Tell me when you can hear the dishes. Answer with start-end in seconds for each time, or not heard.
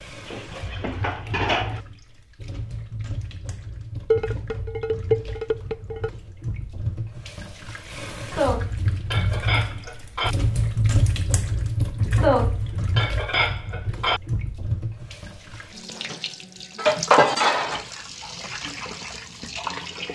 0.2-1.8, 4.1-6.1, 8.3-10.3, 12.2-14.2, 16.8-18.3.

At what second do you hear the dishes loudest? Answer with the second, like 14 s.
17 s.